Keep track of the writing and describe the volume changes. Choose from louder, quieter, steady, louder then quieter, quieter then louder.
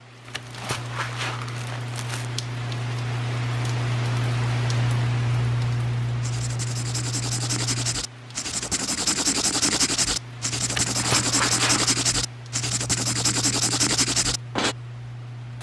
louder.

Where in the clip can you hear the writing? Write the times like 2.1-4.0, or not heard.
6.2-14.8.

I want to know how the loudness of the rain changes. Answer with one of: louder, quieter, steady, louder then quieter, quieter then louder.
louder then quieter.